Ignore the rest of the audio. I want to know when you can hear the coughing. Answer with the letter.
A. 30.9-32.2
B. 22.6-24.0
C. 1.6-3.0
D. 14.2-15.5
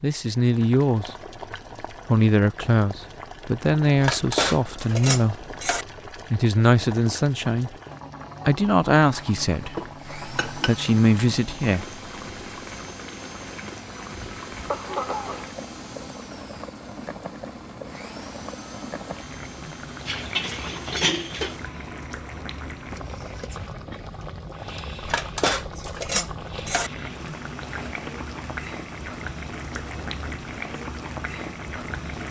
D.